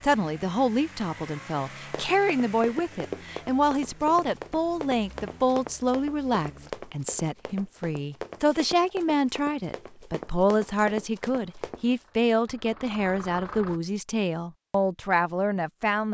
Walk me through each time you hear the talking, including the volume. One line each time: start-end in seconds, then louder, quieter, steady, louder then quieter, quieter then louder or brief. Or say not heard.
0.0-16.0 steady.